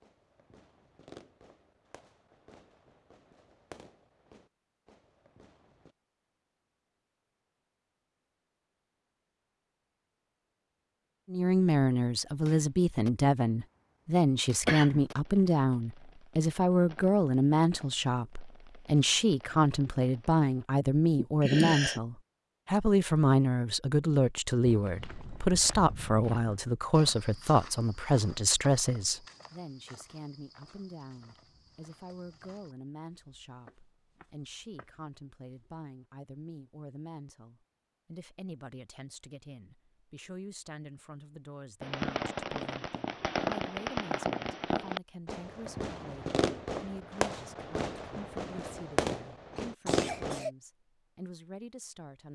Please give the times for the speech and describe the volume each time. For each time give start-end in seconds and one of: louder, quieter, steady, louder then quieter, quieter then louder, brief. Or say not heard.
11.3-52.2 quieter.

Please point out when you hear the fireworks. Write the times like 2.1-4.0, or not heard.
0.0-6.0, 12.2-20.6, 41.8-50.4.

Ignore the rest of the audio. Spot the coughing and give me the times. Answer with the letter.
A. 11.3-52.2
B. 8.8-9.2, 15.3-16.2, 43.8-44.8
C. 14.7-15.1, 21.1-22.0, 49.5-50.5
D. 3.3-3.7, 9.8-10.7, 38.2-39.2
C.